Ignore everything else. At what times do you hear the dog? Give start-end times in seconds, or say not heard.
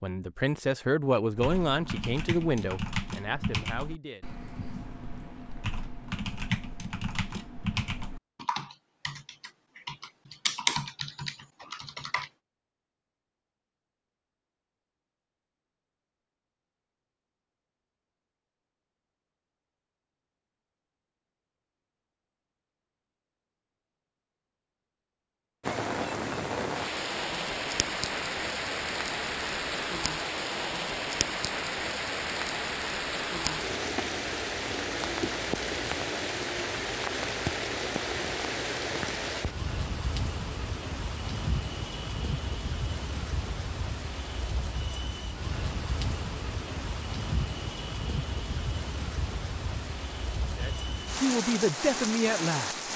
not heard.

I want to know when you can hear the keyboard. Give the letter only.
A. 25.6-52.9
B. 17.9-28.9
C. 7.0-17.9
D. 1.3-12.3
D.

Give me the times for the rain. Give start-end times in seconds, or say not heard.
25.6-52.9.